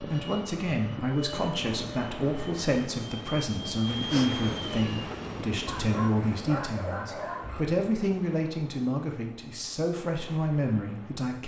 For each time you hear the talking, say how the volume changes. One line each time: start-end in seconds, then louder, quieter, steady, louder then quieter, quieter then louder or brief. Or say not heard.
0.0-11.4 steady.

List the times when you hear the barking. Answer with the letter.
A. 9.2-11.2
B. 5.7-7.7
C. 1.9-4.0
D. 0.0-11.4
B.